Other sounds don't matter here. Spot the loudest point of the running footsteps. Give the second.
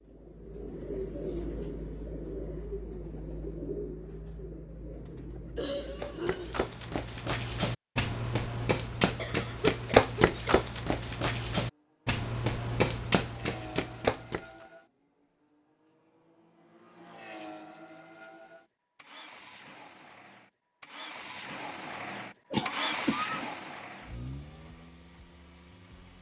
10 s.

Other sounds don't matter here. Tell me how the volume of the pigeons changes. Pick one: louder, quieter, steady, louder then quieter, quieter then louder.
quieter.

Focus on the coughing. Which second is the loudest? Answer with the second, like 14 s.
23 s.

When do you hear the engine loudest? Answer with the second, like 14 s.
23 s.